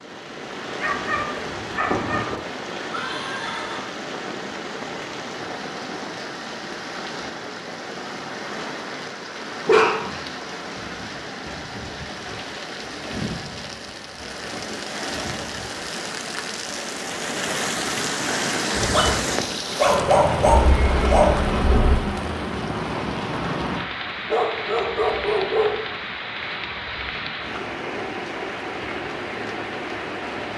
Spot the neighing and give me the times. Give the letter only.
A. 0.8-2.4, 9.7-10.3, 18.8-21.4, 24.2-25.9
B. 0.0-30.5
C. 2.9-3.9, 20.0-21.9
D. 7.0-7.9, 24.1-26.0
C.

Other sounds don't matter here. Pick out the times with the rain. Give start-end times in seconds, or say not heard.
0.0-30.5.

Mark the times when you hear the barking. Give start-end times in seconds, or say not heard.
0.8-2.4, 9.7-10.3, 18.8-21.4, 24.2-25.9.